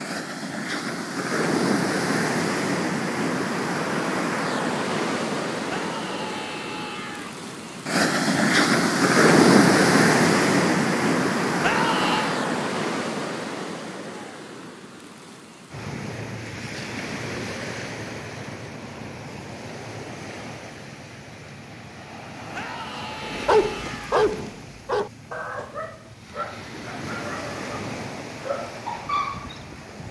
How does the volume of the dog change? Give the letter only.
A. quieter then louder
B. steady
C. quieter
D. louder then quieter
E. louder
A.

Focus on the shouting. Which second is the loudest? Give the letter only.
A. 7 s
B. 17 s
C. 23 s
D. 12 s
D.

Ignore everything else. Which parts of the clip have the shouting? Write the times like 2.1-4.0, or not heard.
5.7-7.3, 11.6-12.4, 22.5-24.2.